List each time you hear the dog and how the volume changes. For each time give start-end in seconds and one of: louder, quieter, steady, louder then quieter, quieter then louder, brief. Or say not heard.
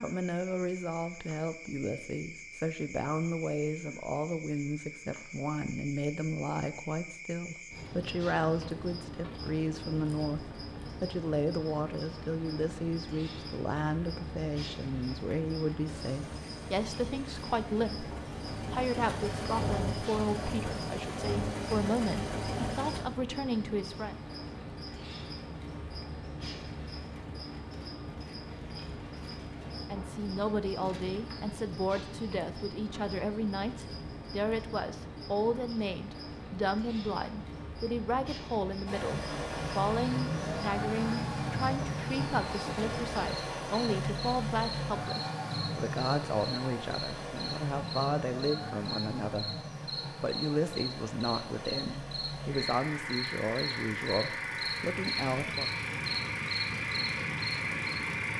not heard.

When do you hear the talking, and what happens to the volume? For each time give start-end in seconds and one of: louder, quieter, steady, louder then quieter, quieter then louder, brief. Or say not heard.
0.0-24.1 steady
29.9-55.7 steady.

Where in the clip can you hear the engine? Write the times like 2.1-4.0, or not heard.
15.8-23.1, 38.9-58.3.